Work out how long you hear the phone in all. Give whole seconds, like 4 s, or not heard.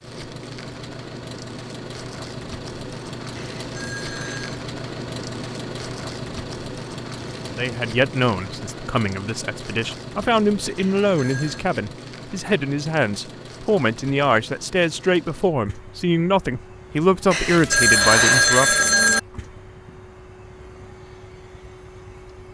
4 s.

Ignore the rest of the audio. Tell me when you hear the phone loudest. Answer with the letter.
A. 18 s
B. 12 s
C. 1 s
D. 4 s
A.